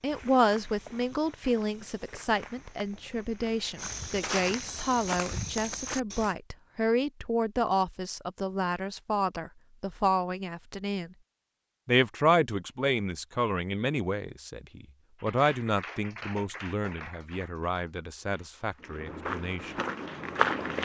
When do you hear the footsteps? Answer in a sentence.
You can hear the footsteps from 0.0 to 6.3 s and from 18.8 to 20.7 s.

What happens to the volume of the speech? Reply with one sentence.
The volume of the speech goes down.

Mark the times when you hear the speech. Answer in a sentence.
You can hear the speech from 0.0 to 11.1 s and from 11.8 to 19.8 s.